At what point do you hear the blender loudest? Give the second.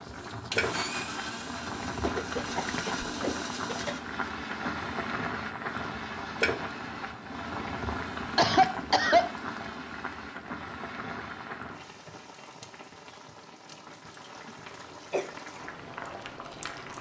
1 s.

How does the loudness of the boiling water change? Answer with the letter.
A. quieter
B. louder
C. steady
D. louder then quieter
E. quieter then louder
A.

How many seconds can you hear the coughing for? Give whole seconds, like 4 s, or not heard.
4 s.